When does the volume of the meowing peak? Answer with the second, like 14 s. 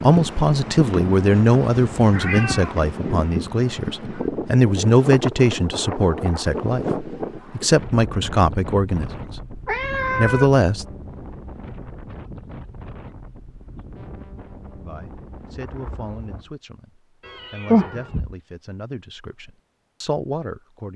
18 s.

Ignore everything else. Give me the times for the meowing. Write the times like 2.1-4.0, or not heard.
1.3-2.9, 9.7-10.5, 17.2-18.4.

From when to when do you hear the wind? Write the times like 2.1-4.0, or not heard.
0.0-16.5.